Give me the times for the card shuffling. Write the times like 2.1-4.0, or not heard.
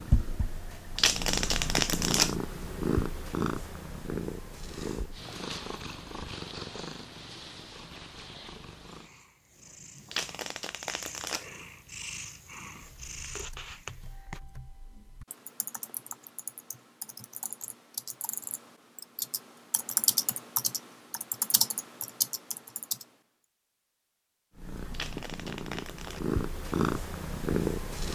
0.9-2.4, 10.1-11.5, 24.9-26.2.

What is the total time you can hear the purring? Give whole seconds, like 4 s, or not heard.
18 s.